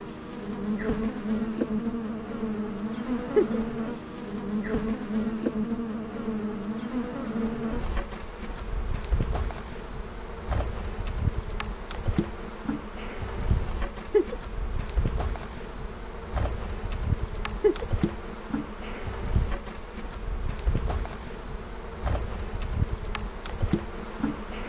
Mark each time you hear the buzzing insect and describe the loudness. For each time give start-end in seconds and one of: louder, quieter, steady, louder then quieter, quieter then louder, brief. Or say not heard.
0.0-24.6 quieter.